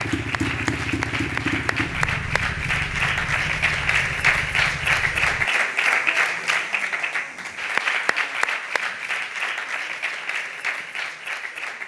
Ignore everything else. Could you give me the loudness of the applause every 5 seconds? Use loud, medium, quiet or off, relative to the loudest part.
loud, loud, medium.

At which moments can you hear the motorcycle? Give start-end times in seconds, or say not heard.
0.0-5.5.